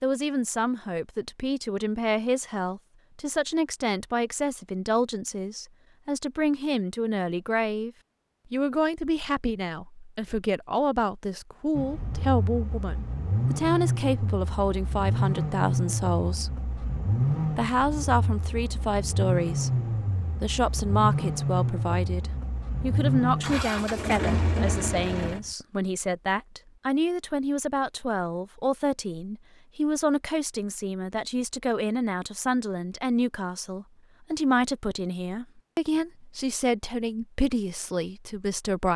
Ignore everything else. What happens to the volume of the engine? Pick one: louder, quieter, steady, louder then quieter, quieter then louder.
steady.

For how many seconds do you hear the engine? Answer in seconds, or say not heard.
14 s.